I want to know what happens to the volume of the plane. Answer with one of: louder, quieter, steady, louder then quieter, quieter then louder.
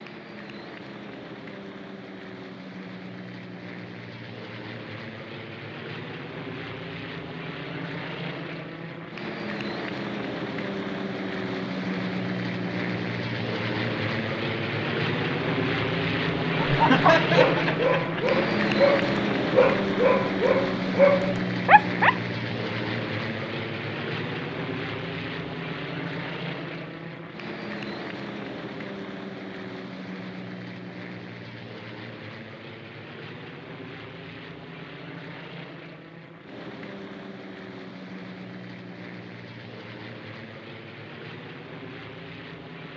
louder then quieter.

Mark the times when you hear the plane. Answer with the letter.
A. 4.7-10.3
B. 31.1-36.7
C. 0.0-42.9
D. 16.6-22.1
C.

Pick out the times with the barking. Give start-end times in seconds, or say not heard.
16.6-22.1.